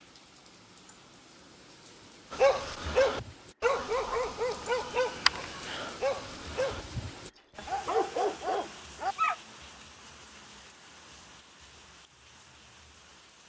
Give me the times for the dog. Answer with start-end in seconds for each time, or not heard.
2.3-6.8, 7.5-9.3.